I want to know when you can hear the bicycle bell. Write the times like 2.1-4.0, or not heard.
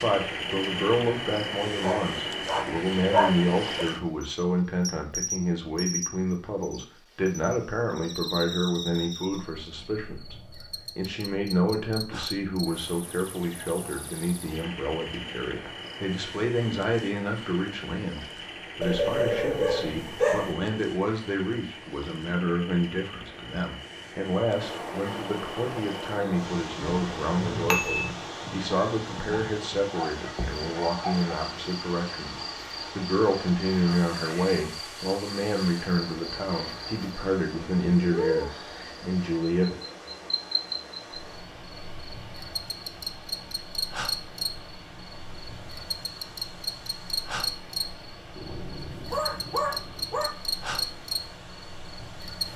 26.8-28.1.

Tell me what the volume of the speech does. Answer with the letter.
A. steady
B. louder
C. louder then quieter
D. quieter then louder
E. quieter
A.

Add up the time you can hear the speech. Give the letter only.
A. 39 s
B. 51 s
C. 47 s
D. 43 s
A.